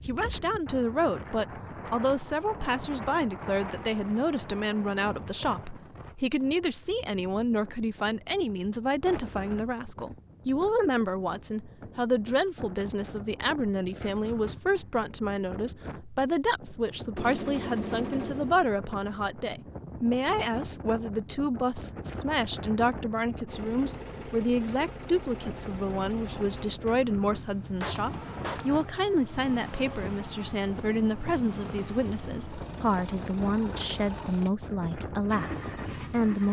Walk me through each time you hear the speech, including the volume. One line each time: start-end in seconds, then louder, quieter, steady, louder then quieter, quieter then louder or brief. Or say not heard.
0.1-36.4 steady.